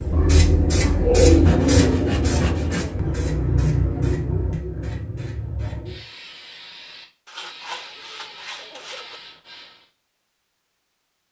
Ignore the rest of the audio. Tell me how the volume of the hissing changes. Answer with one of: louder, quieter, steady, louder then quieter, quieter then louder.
quieter.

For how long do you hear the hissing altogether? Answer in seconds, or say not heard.
10 s.